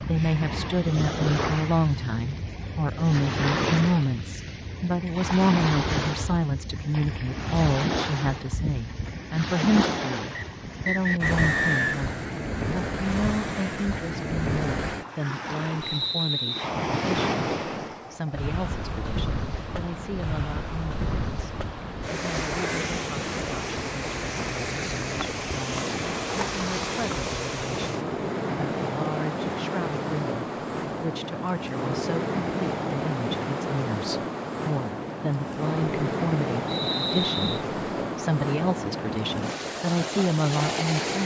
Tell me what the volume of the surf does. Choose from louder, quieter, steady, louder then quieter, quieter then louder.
steady.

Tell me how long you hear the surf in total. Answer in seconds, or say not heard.
41 s.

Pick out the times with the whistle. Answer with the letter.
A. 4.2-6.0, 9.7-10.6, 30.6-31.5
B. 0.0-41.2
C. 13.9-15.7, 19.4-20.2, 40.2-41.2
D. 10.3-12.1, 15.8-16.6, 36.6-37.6
D.